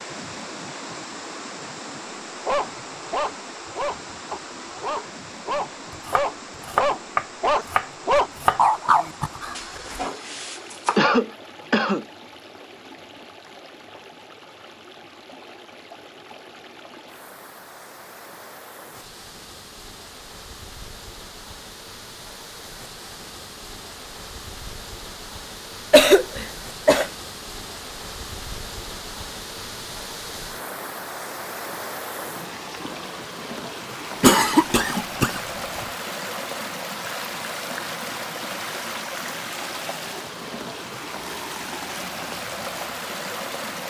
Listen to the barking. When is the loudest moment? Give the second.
9 s.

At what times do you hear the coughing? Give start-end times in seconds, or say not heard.
10.9-12.1, 25.9-27.1, 34.2-35.9.